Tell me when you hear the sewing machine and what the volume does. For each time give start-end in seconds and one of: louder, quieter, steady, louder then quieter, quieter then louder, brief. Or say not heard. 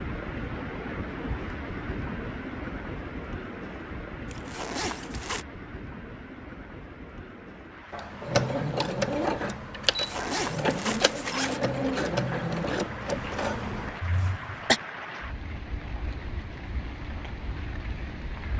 7.9-14.8 quieter.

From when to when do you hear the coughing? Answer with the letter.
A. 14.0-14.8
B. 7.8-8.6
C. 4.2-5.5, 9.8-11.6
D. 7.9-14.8
A.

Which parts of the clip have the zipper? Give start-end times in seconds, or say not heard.
4.2-5.5, 9.8-11.6.